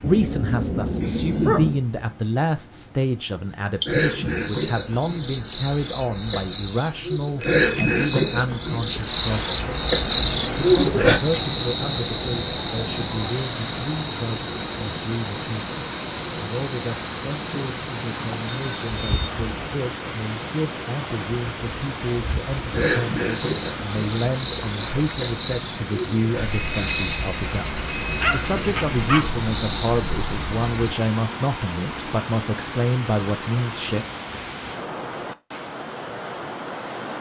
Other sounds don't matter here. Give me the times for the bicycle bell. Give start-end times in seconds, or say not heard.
7.4-8.3, 18.4-19.3, 26.5-28.2.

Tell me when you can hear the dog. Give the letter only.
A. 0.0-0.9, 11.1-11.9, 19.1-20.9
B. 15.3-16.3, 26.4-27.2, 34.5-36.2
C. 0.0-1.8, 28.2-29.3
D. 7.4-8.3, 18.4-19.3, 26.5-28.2
C.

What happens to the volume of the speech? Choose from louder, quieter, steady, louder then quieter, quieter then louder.
quieter then louder.